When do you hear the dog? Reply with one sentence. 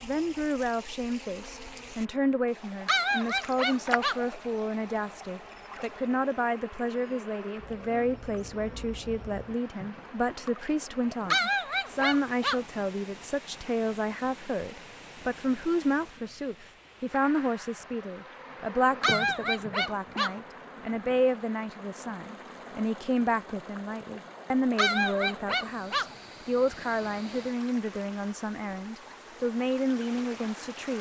You can hear the dog from 2.9 to 4.2 s, from 11.2 to 12.6 s, from 19.0 to 20.4 s and from 24.8 to 26.1 s.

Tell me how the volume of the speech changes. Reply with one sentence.
The volume of the speech stays about the same.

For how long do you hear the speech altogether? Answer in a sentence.
You can hear the speech for 31 seconds altogether.